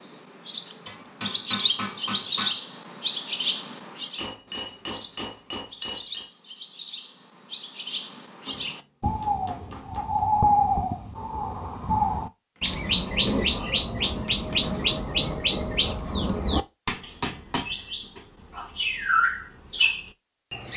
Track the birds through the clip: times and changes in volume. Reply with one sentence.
You can hear the birds from 0.0 to 20.7 s, getting quieter then louder.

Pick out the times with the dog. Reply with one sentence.
You can't hear the dog here.